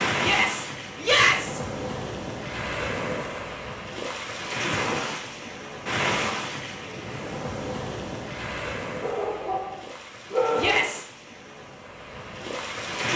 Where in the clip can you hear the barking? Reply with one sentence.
The barking can be heard from 9.0 to 11.0 s.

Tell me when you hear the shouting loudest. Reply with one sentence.
The loudest moment of the shouting is at 1 second.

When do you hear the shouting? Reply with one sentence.
The shouting can be heard from 0.2 to 1.6 s and from 10.6 to 11.1 s.